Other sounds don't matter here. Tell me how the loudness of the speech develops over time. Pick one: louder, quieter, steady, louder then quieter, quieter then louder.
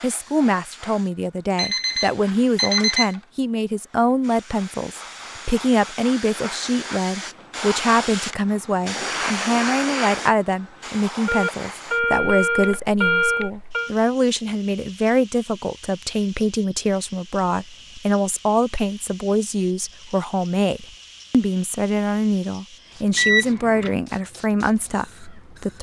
steady.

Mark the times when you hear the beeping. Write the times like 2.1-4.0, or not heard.
1.6-3.1, 11.2-13.9, 23.1-23.9.